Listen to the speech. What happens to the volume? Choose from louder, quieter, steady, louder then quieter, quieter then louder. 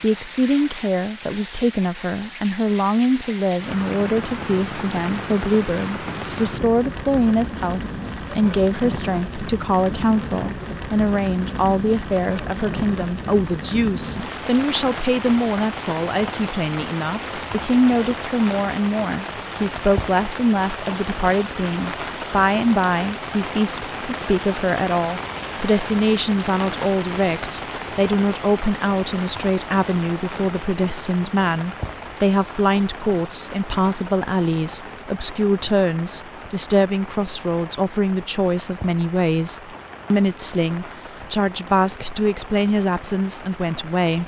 steady.